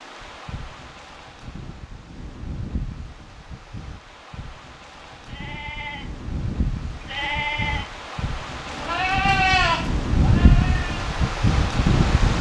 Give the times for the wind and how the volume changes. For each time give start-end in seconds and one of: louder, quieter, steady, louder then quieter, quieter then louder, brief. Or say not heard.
0.0-12.3 louder.